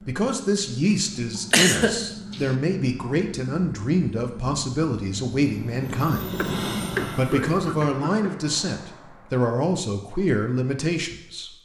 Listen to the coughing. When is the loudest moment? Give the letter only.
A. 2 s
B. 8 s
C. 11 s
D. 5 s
A.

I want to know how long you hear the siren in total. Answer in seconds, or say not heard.
not heard.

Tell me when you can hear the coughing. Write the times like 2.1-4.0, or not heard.
1.5-2.4, 6.3-8.3.